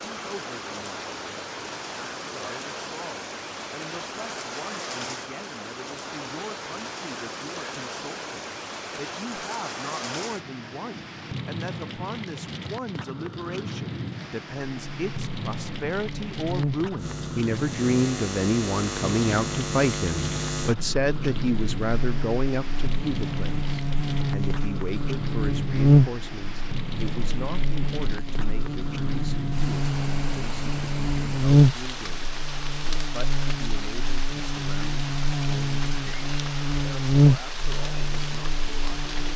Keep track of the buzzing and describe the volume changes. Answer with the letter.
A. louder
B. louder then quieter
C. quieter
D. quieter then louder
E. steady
A.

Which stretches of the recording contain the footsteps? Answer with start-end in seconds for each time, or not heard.
not heard.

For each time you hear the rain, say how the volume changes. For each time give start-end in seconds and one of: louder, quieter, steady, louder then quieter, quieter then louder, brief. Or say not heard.
0.0-39.3 steady.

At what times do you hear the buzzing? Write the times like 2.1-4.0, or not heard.
14.8-39.3.